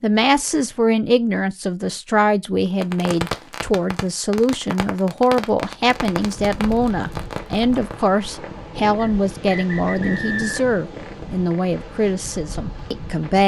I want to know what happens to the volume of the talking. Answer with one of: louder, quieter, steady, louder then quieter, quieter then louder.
steady.